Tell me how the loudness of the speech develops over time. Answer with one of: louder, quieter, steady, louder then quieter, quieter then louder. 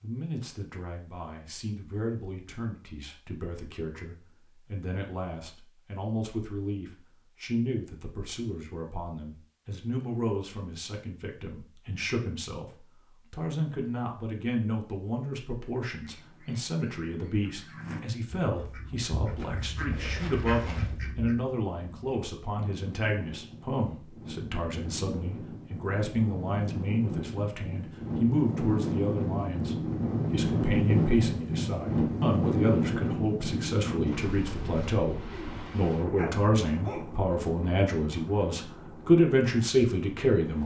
louder.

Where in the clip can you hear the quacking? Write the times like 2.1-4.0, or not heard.
16.0-21.4.